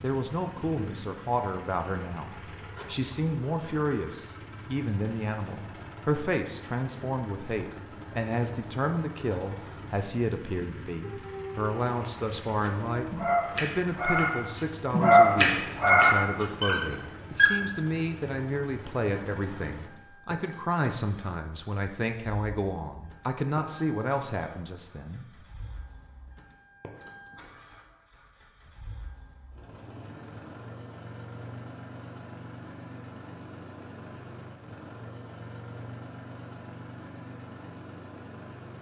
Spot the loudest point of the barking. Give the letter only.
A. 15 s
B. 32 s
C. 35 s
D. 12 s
A.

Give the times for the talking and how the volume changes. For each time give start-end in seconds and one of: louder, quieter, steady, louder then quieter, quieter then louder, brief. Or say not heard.
0.0-25.2 steady.